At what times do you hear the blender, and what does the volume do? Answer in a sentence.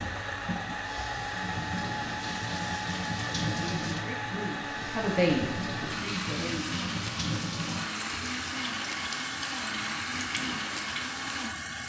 You can hear the blender from 0.0 to 11.8 s, at a steady volume.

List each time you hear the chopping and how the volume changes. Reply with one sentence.
You can't hear the chopping here.